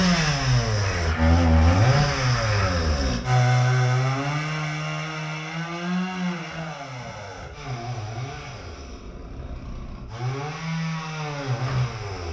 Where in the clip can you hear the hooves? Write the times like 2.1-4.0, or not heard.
not heard.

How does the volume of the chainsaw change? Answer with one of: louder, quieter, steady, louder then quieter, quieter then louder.
quieter then louder.